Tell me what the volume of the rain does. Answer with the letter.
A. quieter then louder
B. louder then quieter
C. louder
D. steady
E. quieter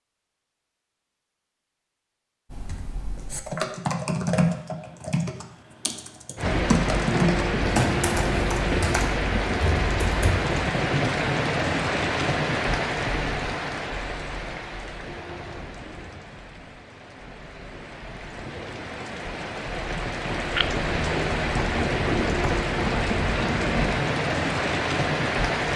A.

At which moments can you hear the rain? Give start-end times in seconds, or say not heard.
6.3-25.7.